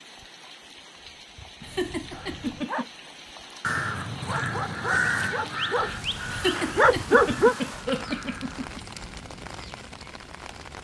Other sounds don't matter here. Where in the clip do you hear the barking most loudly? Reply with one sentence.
The loudest moment of the barking is at 7 seconds.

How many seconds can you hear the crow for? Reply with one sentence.
You can hear the crow for 5 seconds altogether.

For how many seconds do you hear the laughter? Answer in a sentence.
You can hear the laughter for 4 seconds altogether.